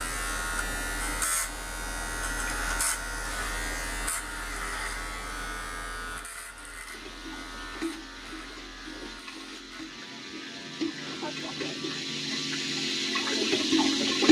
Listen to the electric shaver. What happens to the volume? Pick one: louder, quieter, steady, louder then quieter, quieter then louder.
quieter.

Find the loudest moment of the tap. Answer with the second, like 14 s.
14 s.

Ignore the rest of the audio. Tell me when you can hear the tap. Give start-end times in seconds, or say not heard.
6.8-14.2.